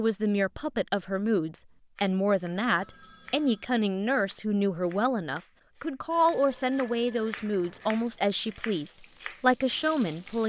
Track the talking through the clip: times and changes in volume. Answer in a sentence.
You can hear the talking from 0.0 to 10.4 s, at a steady volume.